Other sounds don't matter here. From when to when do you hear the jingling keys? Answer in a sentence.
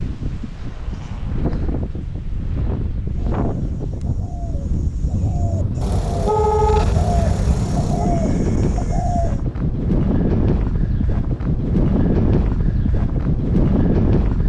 You can't hear the jingling keys here.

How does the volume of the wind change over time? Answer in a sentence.
The loudness of the wind goes up.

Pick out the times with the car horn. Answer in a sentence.
You can hear the car horn from 5.8 to 8.1 s.